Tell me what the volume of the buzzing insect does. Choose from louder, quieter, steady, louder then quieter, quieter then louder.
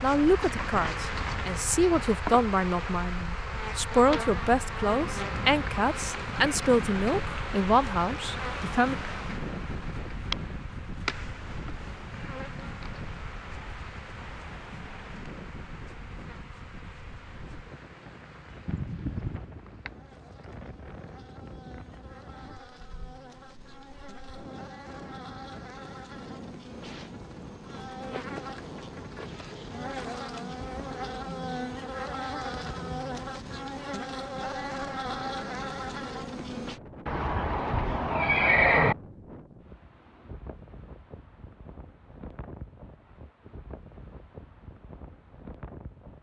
quieter then louder.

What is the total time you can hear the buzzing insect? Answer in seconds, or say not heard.
37 s.